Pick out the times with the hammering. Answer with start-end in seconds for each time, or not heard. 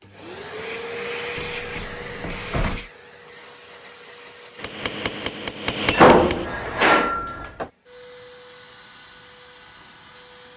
4.5-6.5.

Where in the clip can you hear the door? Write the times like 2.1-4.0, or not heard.
1.4-2.9, 5.8-7.7.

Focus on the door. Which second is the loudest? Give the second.
6 s.